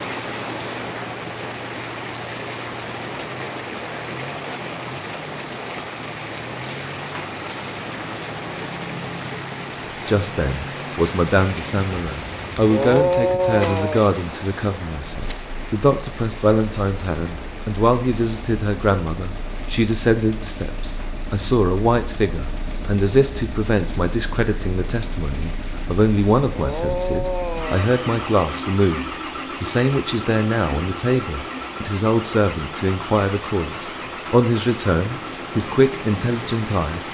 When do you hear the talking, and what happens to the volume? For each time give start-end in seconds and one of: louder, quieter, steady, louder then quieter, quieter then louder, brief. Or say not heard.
9.7-37.0 steady.